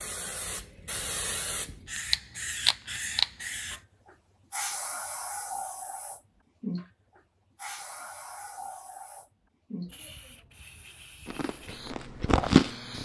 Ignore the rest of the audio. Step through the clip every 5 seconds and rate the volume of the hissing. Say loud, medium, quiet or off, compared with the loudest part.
loud, medium, quiet.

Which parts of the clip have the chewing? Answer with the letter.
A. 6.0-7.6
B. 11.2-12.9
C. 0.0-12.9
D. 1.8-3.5
B.